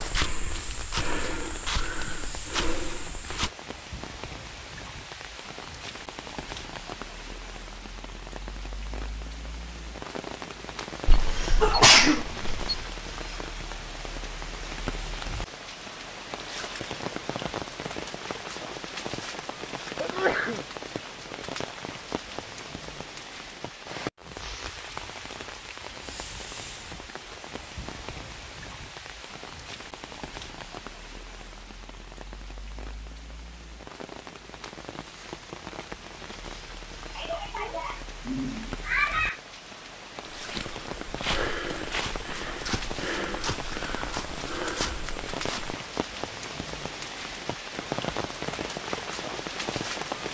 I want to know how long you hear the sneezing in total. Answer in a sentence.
The sneezing can be heard for 5 seconds in total.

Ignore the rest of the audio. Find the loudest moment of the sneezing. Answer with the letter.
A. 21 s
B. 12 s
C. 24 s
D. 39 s
B.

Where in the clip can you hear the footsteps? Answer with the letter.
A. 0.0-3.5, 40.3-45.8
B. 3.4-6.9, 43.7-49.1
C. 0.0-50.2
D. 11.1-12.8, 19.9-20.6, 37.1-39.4
A.